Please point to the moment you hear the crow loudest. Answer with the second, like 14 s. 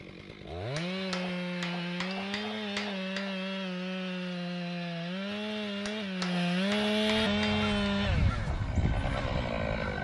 8 s.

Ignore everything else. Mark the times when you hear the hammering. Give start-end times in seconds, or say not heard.
0.8-3.4, 5.8-7.7.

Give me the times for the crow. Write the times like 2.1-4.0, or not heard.
7.0-9.9.